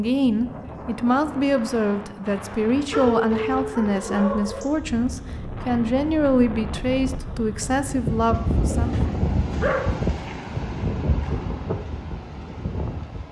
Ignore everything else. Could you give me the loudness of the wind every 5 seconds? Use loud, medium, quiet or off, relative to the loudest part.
medium, loud, loud.